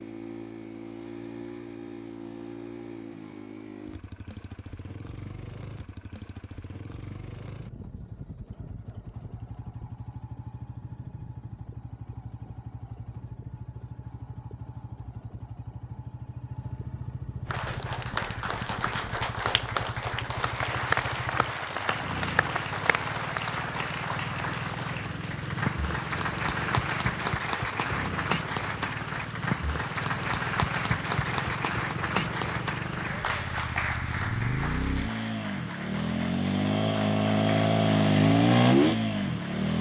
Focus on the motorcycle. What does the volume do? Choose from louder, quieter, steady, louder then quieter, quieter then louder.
louder.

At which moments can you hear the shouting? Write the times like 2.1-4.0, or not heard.
not heard.